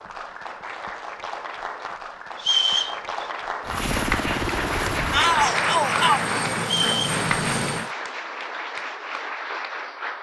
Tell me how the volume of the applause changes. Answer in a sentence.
The loudness of the applause goes up, then down.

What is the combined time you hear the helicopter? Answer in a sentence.
The helicopter can be heard for 4 seconds in total.